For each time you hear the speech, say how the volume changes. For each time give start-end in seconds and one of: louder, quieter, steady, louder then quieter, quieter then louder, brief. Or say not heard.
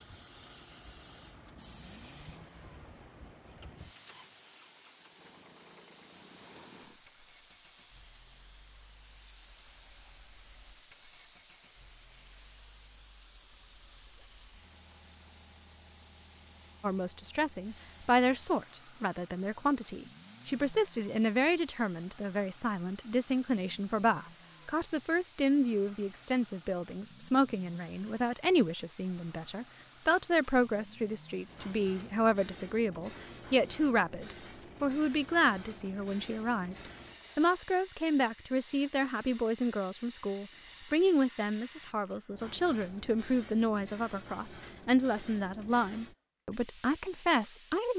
16.8-47.9 steady.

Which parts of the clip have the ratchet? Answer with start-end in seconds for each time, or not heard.
not heard.